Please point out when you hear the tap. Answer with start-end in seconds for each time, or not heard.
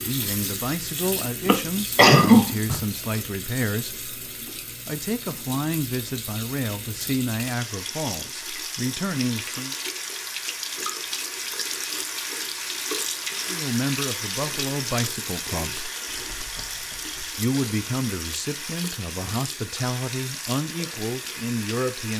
0.0-22.1.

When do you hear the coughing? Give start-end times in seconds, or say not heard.
1.4-2.8.